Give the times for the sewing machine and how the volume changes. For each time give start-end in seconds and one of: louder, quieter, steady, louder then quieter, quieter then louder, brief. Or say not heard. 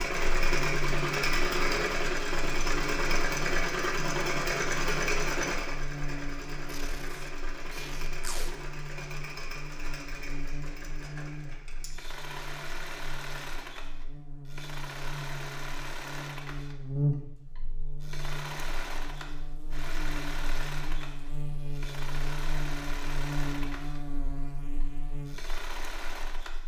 0.0-26.6 quieter.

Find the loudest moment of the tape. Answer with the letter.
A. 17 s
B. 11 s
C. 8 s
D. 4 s
C.